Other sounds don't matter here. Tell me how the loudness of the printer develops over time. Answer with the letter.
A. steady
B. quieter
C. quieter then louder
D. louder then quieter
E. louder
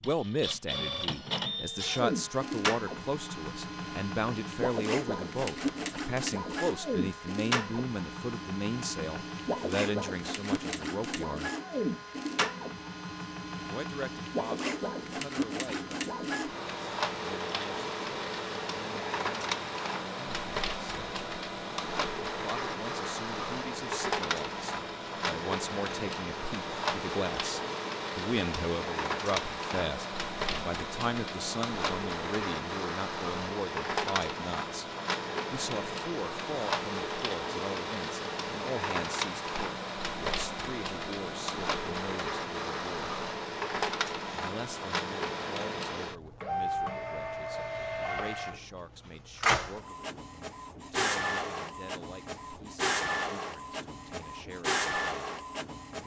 A.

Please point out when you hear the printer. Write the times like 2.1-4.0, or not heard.
0.0-56.0.